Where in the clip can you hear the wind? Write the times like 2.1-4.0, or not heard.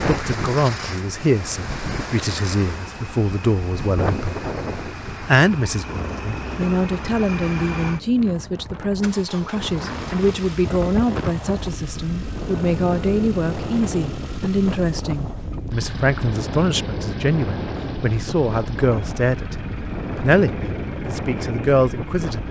0.0-22.4.